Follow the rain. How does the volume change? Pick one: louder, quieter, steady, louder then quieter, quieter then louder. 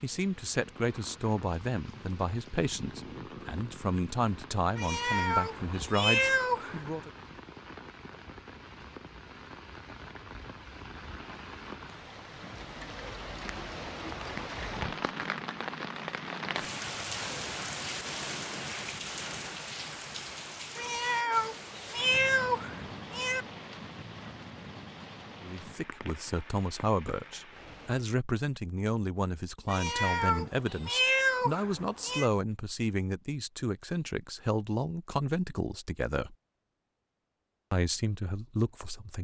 louder then quieter.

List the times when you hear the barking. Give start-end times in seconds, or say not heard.
not heard.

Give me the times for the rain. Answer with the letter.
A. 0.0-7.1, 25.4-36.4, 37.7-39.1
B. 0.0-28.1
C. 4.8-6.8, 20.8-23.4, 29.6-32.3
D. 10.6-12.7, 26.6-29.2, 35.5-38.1
B.